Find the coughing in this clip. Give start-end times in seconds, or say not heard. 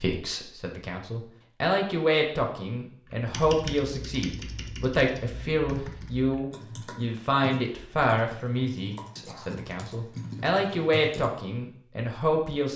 9.2-9.7.